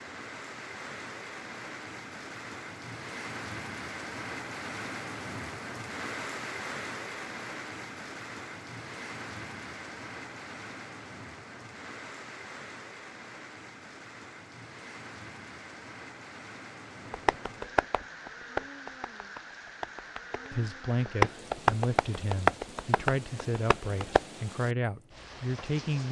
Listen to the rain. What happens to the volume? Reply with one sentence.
The volume of the rain goes down.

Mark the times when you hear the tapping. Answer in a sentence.
The tapping can be heard from 17.1 to 24.2 s.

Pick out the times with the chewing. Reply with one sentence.
You can't hear the chewing here.